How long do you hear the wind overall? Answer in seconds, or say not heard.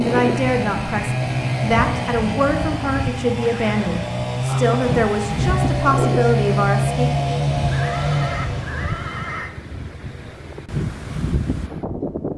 12 s.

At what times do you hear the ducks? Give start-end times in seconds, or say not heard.
not heard.